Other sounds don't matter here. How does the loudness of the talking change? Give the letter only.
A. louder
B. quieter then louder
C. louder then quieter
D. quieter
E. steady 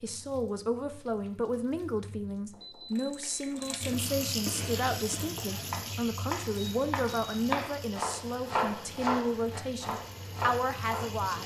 E.